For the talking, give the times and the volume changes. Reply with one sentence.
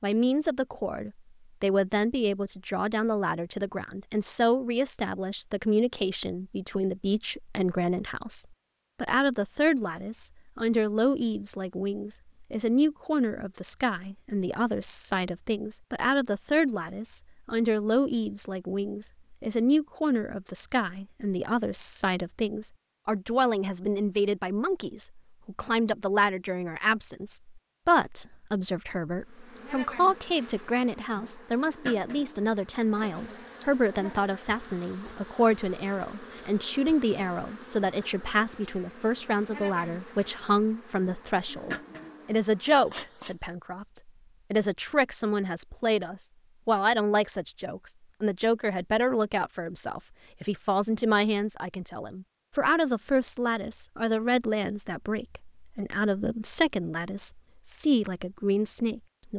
You can hear the talking from 0.0 to 59.3 s, at a steady volume.